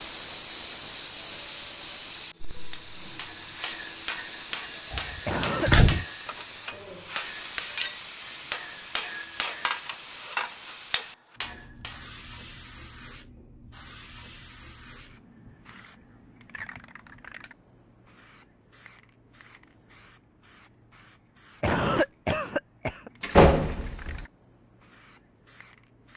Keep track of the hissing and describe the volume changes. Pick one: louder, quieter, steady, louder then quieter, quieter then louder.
quieter.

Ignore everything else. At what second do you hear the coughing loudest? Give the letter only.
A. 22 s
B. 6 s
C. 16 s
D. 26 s
A.